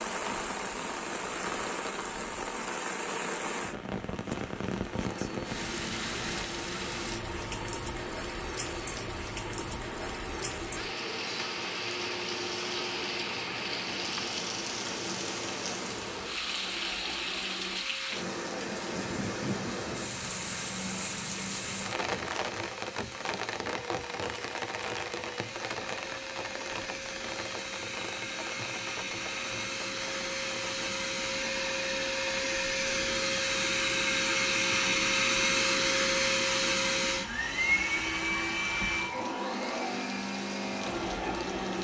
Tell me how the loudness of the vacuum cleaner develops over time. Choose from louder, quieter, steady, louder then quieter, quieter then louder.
louder.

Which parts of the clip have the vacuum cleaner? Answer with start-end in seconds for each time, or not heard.
4.8-41.7.